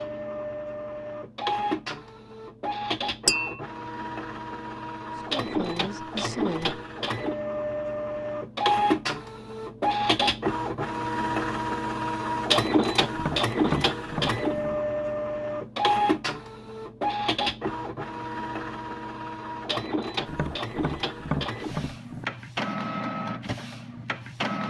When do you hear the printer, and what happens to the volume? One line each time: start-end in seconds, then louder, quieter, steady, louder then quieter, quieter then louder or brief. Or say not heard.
0.0-24.6 louder then quieter.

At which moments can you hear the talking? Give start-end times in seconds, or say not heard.
5.2-6.8.